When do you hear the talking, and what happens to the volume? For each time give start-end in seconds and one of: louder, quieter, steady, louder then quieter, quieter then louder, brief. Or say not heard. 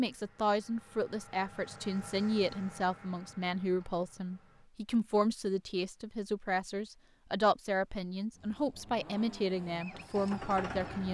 0.0-11.0 steady.